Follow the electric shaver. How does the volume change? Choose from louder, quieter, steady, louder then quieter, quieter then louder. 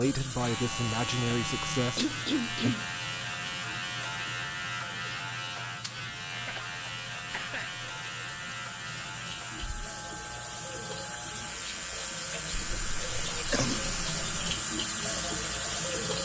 quieter.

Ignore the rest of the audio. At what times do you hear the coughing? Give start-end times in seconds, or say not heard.
1.9-2.9, 6.3-7.8, 12.5-14.5.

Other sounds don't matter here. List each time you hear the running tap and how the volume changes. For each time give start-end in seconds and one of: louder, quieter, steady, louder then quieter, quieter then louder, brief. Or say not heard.
0.0-16.1 quieter then louder.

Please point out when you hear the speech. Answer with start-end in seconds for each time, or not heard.
0.0-2.8.